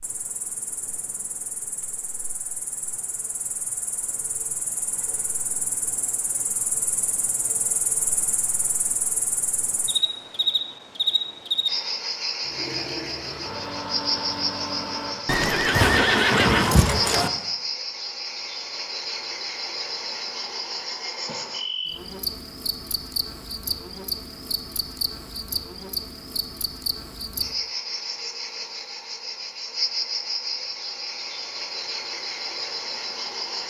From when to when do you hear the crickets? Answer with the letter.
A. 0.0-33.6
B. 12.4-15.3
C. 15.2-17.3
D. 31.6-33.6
A.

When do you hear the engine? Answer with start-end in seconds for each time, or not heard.
12.4-15.3.